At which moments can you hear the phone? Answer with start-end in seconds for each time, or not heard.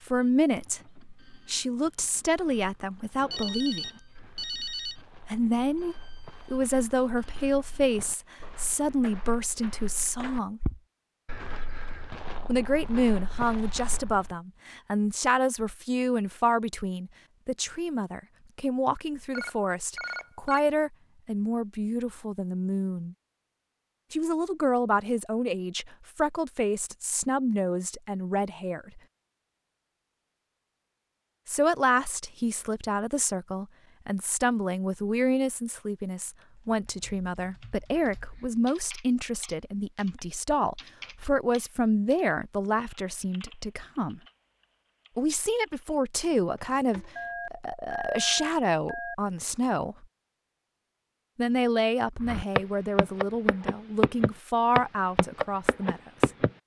3.2-5.0, 19.3-20.6, 47.1-49.1.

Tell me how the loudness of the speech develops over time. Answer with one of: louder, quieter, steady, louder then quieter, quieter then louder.
steady.